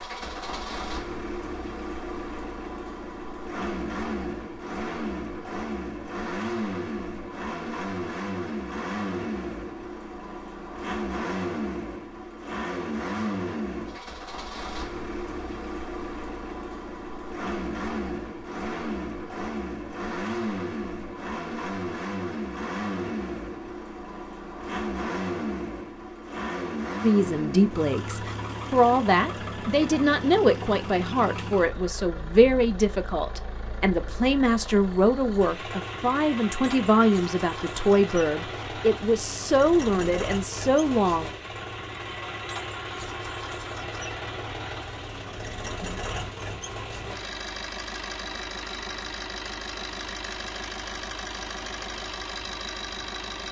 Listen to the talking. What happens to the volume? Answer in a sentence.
The volume of the talking stays about the same.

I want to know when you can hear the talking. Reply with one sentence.
The talking can be heard from 27.0 to 41.3 s.